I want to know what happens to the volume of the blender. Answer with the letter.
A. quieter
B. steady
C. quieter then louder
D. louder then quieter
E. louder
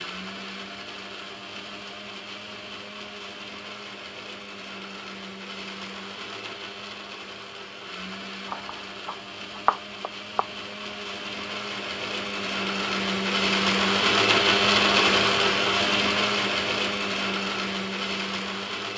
E.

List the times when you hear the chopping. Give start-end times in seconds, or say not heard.
8.4-10.5.